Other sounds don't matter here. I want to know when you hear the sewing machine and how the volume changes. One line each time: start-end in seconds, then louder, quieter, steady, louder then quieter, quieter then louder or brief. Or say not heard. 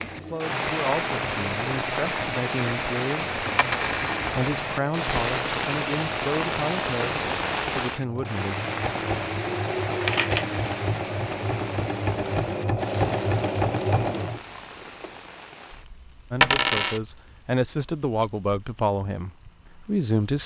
0.0-15.1 louder.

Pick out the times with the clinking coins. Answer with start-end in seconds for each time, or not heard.
3.5-4.3, 10.0-11.3, 16.4-17.0.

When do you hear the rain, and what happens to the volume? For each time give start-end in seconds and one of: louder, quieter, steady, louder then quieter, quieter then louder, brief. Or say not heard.
0.0-20.4 quieter.